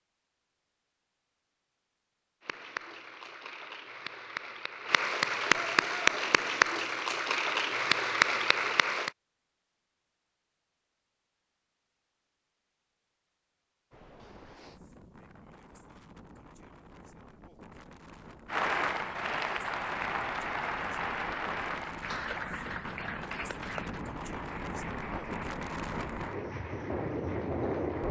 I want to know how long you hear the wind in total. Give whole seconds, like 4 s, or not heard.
14 s.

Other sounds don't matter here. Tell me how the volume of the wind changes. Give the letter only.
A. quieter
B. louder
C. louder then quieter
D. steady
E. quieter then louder
B.